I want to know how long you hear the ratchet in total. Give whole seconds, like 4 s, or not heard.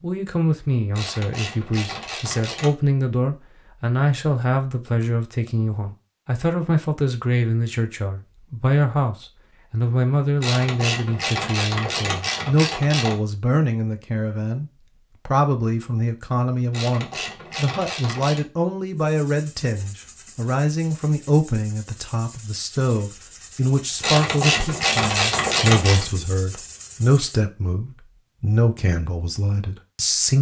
8 s.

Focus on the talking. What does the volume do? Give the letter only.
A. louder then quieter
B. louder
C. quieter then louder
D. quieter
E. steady
E.